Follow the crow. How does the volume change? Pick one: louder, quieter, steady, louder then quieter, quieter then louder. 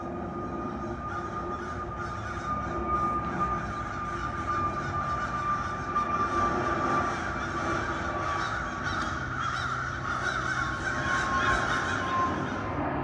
louder.